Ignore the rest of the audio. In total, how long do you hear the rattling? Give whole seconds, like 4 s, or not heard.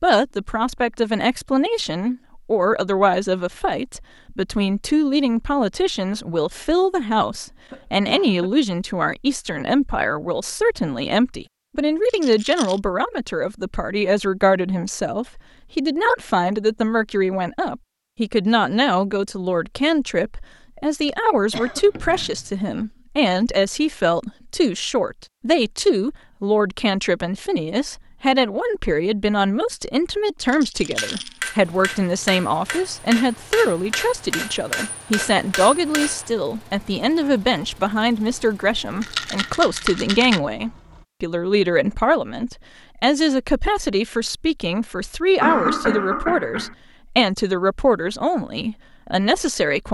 3 s.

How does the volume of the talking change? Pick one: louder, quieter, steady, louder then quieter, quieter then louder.
steady.